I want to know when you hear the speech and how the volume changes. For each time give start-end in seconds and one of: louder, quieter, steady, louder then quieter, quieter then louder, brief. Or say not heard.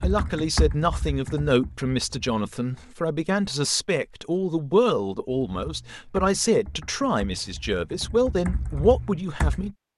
0.0-9.8 steady.